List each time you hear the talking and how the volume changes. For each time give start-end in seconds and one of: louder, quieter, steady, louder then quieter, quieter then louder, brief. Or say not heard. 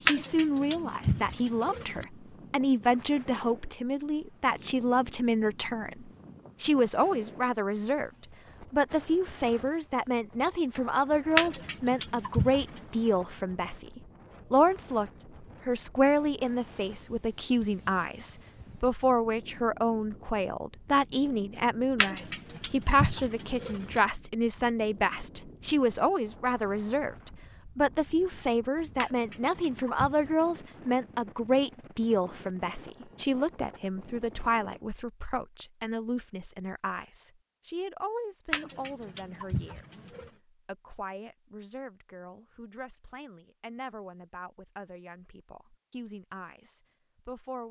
0.1-47.6 quieter.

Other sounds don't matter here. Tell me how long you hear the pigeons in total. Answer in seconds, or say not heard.
9 s.